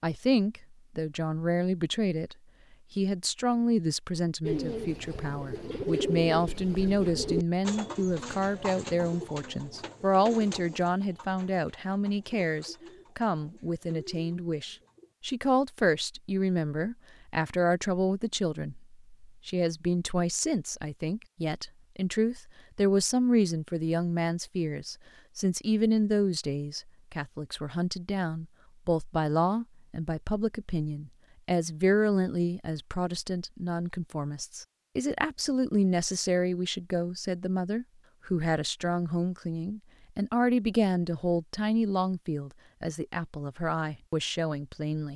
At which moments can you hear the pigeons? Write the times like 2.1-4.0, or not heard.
4.4-15.1.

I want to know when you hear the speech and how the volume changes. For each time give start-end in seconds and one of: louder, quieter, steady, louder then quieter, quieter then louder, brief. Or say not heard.
0.0-45.1 steady.